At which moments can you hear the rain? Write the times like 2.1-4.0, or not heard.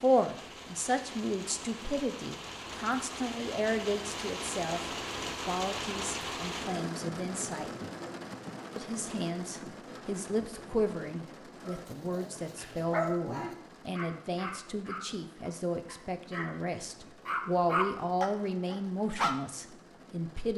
0.0-20.5.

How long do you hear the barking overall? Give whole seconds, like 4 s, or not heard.
7 s.